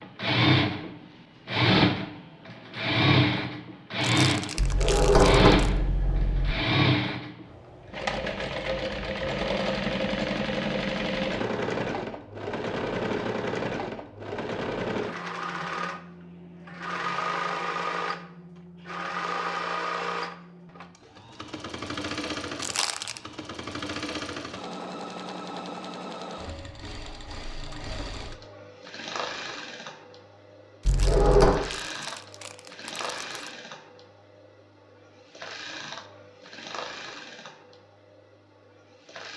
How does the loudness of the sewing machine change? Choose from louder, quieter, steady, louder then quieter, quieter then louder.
quieter.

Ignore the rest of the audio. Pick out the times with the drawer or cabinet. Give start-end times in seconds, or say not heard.
4.5-6.5, 30.9-31.6.